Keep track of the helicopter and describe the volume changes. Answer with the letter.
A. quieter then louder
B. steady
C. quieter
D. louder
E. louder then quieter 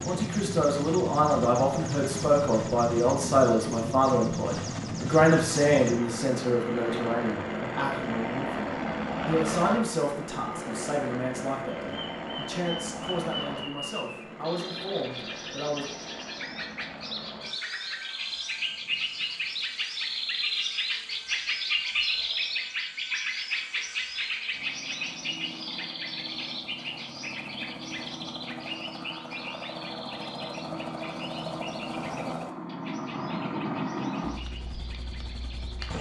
A.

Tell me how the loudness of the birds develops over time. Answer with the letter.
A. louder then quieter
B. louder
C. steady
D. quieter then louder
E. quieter
A.